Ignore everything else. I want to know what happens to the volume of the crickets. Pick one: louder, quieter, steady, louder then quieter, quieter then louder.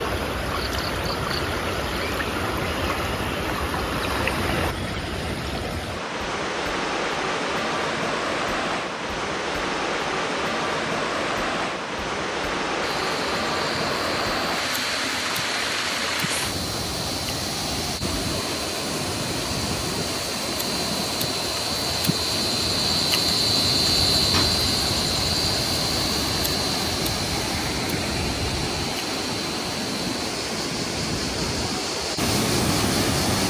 louder then quieter.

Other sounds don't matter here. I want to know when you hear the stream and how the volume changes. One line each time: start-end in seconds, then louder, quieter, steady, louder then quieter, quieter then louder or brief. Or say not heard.
0.0-33.4 steady.